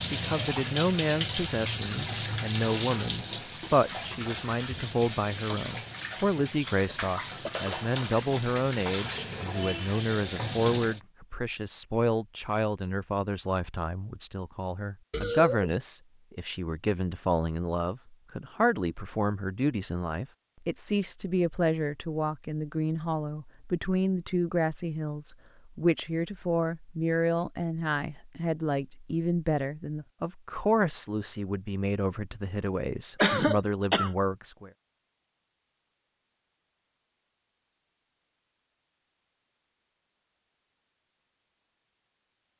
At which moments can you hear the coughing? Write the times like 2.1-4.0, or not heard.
6.8-8.2, 15.1-15.8, 33.2-34.1.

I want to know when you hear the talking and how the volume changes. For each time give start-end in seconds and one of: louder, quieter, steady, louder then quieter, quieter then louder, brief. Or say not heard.
0.0-34.7 steady.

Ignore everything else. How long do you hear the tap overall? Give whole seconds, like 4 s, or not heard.
11 s.